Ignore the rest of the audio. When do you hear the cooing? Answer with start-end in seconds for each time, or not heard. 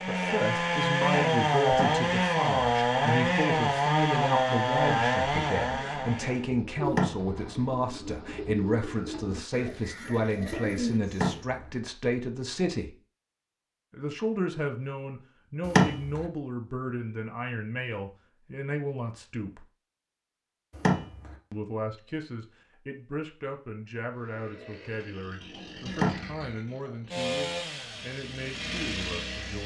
5.6-11.3.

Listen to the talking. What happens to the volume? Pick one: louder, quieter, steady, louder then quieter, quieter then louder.
quieter.